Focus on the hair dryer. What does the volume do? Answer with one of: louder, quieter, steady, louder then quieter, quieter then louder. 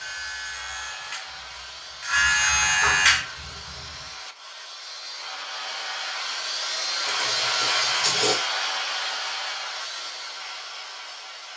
louder then quieter.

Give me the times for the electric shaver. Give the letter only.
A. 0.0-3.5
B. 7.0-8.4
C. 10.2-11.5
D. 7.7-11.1
A.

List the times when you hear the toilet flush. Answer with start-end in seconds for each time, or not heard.
7.0-8.4.